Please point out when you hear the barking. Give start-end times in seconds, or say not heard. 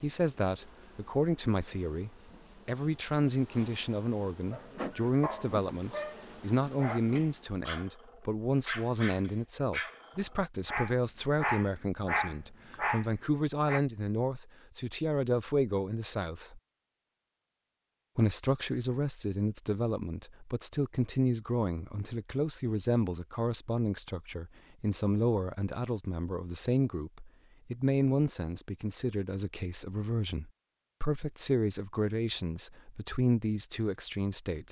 4.5-13.8.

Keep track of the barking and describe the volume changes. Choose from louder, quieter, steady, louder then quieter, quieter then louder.
louder.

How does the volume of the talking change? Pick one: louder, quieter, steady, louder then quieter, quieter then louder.
steady.